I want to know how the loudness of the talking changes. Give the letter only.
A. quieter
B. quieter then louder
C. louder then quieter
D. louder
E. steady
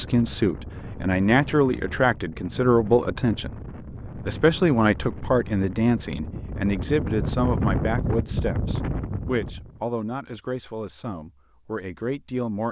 A.